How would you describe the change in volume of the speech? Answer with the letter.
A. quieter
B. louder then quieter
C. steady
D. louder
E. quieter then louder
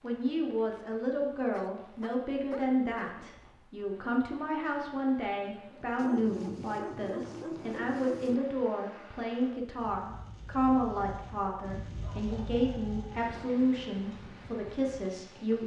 C.